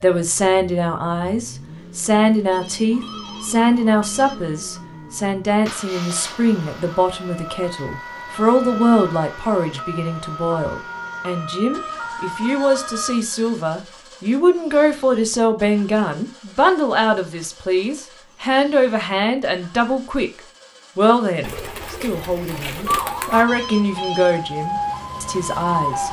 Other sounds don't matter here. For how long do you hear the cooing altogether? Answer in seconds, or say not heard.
2 s.